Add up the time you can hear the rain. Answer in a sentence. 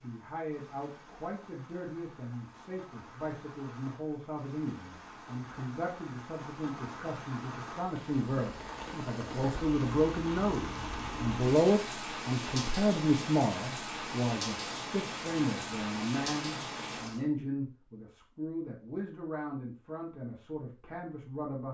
The rain can be heard for 17 seconds in total.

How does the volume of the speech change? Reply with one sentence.
The volume of the speech goes up, then down.